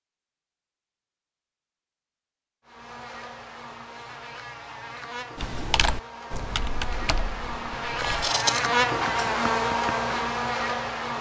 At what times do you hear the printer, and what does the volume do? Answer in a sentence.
The printer can't be heard in this clip.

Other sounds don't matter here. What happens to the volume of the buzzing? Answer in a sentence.
The volume of the buzzing goes up.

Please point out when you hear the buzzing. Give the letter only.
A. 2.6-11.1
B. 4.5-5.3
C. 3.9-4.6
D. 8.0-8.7
A.